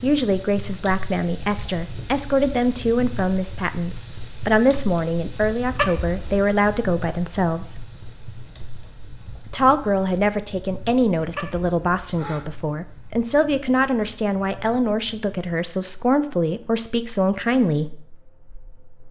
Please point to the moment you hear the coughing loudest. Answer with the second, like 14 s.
6 s.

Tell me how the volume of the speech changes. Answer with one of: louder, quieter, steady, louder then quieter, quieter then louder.
steady.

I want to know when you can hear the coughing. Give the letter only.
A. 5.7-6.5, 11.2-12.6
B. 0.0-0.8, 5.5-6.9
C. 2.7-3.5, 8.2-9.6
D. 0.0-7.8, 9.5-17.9
A.